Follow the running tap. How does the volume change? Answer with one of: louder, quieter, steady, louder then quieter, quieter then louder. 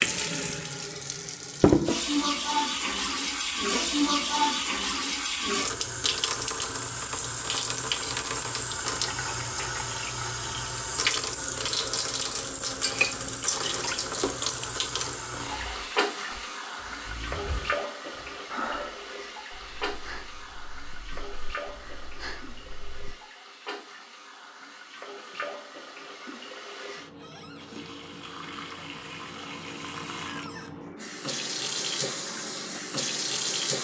quieter then louder.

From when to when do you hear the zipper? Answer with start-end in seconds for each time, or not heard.
17.1-17.7.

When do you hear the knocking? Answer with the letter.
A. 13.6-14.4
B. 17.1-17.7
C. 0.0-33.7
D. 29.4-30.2
A.